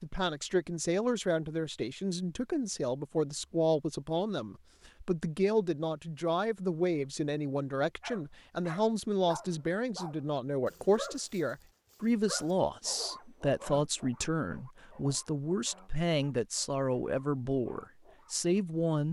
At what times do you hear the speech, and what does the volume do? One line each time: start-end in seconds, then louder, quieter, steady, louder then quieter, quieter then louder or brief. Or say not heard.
0.0-19.0 steady.